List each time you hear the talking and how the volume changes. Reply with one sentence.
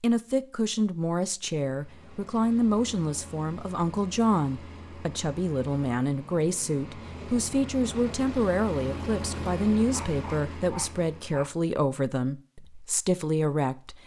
The talking can be heard from 0.0 to 14.0 s, at a steady volume.